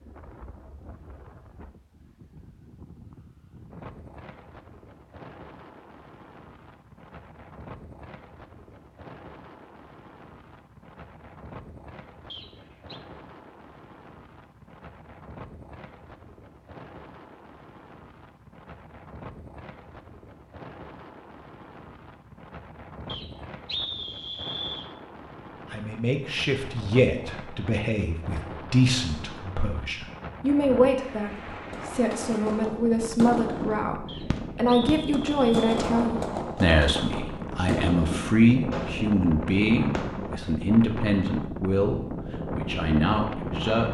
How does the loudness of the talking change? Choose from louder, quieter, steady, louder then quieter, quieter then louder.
steady.